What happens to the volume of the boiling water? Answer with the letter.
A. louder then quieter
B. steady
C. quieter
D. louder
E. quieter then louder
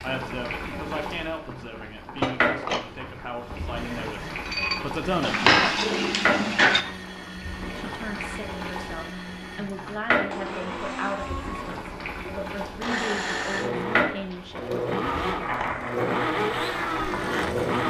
B.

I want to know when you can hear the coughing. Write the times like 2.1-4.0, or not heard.
not heard.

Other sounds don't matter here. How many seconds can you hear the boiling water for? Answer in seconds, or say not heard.
18 s.